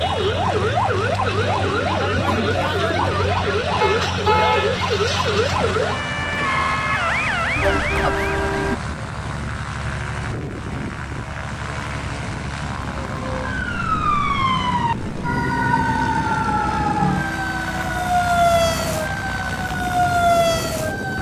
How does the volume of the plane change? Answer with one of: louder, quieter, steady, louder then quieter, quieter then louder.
steady.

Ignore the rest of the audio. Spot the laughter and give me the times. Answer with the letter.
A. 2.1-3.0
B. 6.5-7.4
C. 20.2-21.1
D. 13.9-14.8
A.